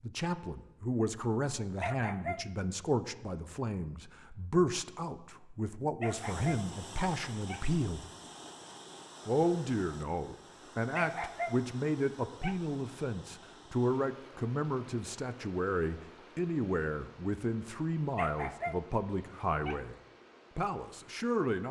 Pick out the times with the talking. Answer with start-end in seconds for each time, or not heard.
0.0-8.1, 9.2-19.9, 20.6-21.6.